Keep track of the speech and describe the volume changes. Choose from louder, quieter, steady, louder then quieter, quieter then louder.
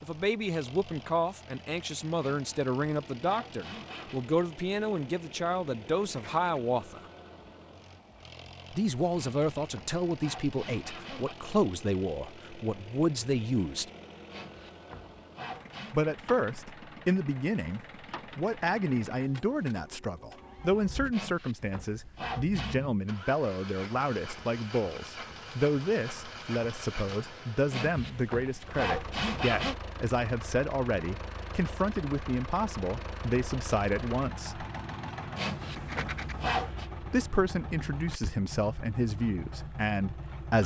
steady.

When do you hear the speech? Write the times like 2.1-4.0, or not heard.
0.0-7.0, 8.7-13.8, 15.9-34.6, 37.0-40.6.